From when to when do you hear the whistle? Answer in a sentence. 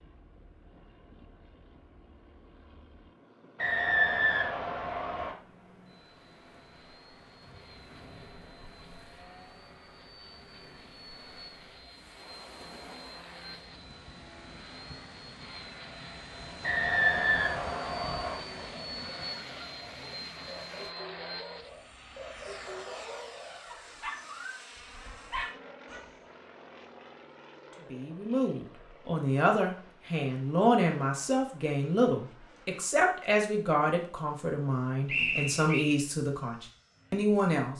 The whistle can be heard from 3.5 to 5.3 s, from 16.6 to 18.4 s and from 35.0 to 36.0 s.